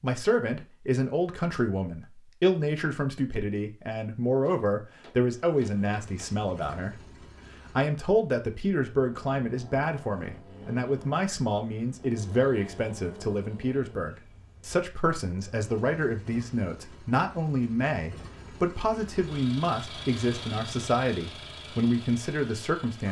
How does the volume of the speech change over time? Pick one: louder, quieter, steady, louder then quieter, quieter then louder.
steady.